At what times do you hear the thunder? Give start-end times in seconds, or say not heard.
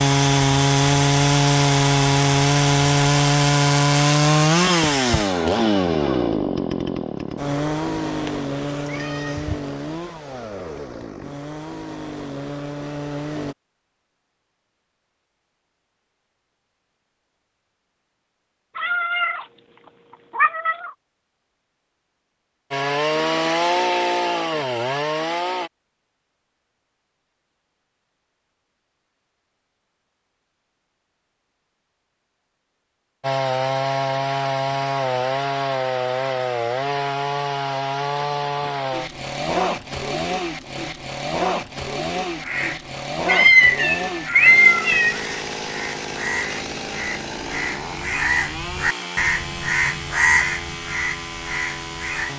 not heard.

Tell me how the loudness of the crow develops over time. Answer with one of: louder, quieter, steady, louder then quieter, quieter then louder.
louder.